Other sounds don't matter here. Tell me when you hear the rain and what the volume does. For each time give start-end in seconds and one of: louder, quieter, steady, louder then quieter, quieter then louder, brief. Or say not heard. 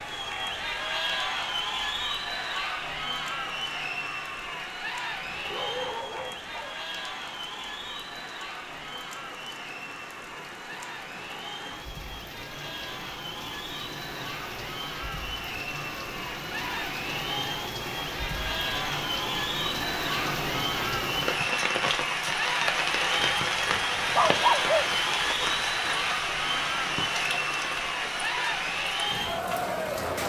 0.0-30.2 louder.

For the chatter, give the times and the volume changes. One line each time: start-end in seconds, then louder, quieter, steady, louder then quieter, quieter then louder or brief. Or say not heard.
0.0-30.2 quieter then louder.